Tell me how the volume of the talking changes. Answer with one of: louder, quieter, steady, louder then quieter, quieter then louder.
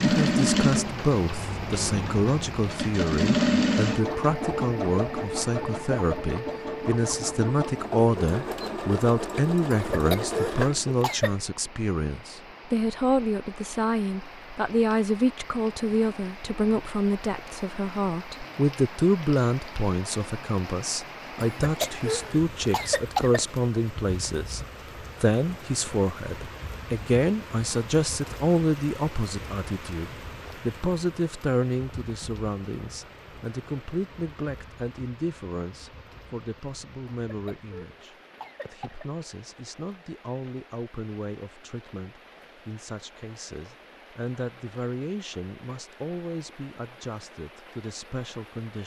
quieter.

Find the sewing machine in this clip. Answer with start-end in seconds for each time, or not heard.
0.0-11.1.